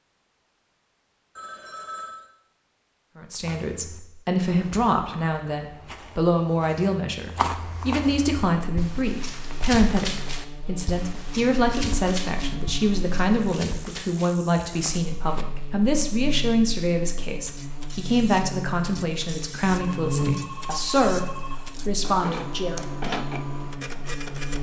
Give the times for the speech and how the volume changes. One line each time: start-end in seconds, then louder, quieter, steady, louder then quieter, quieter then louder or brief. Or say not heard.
3.1-22.9 steady.